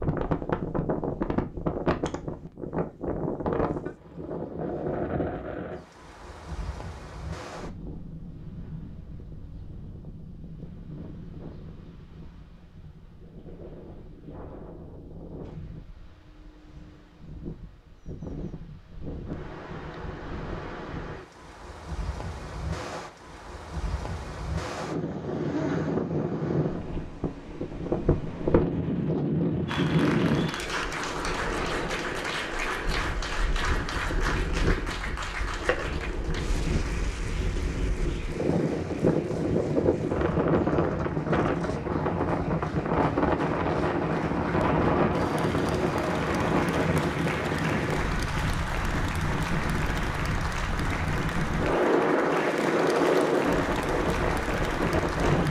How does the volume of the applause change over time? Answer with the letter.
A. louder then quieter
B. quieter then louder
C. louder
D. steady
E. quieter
B.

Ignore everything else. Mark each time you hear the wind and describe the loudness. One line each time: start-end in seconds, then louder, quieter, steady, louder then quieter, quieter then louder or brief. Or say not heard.
0.0-55.4 quieter then louder.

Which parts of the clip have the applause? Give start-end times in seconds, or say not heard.
29.6-55.4.